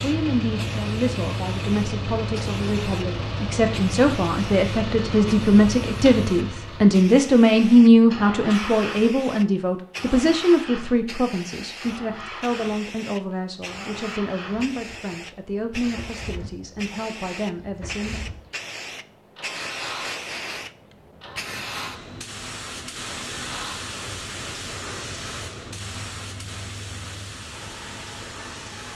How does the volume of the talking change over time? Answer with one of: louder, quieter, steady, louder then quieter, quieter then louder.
louder then quieter.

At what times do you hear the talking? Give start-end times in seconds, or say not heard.
0.0-18.3.